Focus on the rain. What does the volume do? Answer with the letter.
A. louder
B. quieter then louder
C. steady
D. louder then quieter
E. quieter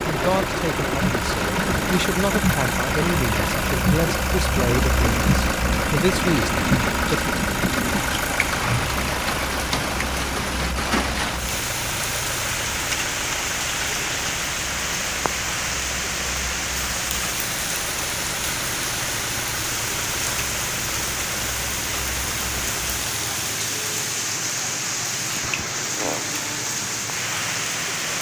C.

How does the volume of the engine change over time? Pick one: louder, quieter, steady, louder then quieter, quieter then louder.
quieter.